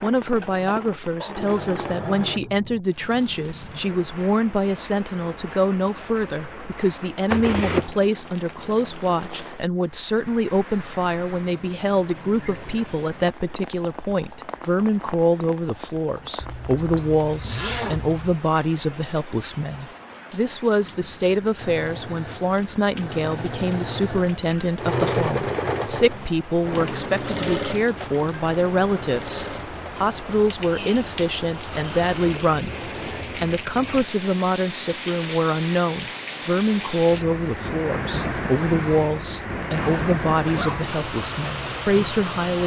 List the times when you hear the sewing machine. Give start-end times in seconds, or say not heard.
0.0-2.4, 21.6-33.4.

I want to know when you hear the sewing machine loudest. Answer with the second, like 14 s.
25 s.